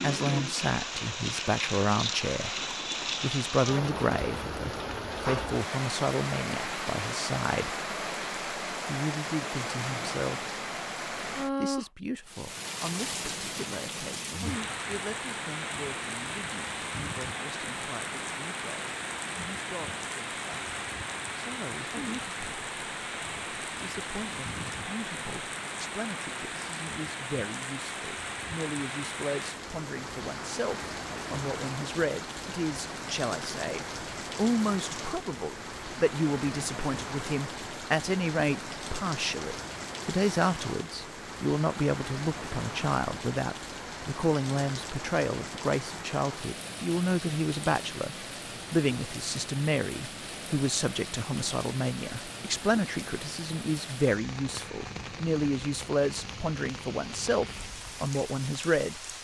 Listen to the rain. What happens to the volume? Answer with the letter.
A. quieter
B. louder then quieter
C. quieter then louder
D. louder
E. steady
A.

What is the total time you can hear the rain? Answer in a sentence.
The rain can be heard for 59 seconds in total.